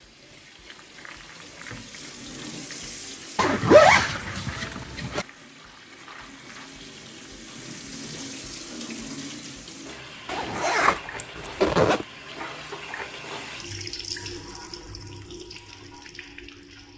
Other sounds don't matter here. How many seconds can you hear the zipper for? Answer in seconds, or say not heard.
4 s.